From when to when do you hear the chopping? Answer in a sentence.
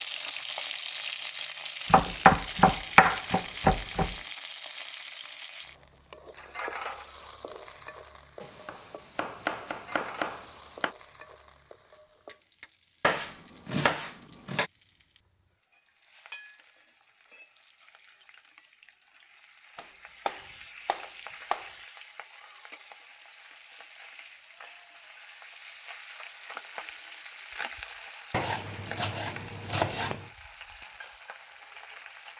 You can hear the chopping from 1.9 to 4.2 s, from 8.4 to 10.9 s, from 13.0 to 14.7 s, from 19.8 to 21.7 s and from 28.3 to 30.3 s.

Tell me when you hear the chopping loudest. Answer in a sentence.
The volume of the chopping peaks at 2 seconds.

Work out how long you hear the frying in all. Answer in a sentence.
You can hear the frying for 32 seconds altogether.